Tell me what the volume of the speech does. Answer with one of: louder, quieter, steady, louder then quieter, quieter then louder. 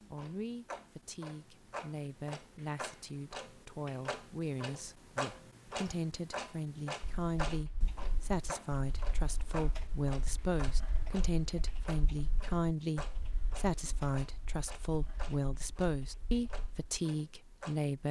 louder.